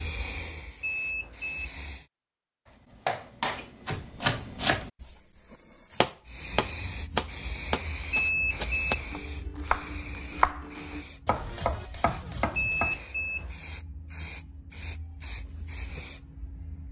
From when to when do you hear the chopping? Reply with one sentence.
The chopping can be heard from 2.7 to 13.0 s.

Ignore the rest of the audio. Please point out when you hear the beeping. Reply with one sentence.
The beeping can be heard from 0.8 to 1.7 s, from 8.1 to 9.1 s and from 12.6 to 13.6 s.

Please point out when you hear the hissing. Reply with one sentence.
The hissing can be heard from 0.0 to 2.0 s and from 6.2 to 16.8 s.